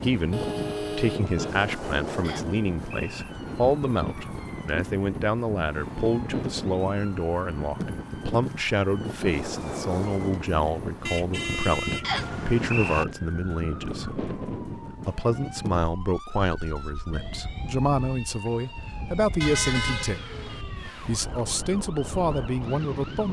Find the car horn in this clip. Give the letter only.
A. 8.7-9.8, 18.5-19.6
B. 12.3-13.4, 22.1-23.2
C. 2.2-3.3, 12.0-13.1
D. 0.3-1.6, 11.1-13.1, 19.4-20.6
D.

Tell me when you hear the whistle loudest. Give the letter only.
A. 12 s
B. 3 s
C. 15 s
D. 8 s
A.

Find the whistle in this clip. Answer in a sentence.
The whistle can be heard from 2.2 to 3.3 s and from 12.0 to 13.1 s.